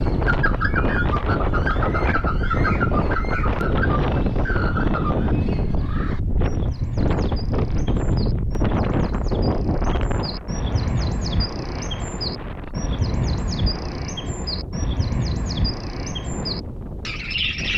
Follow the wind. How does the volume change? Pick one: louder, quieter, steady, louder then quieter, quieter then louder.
quieter.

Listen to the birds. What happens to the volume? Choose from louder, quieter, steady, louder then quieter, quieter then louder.
quieter then louder.